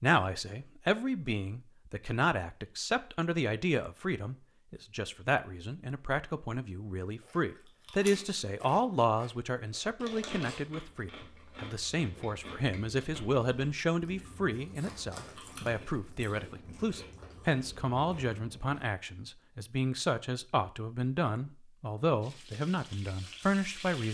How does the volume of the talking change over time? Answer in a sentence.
The volume of the talking stays about the same.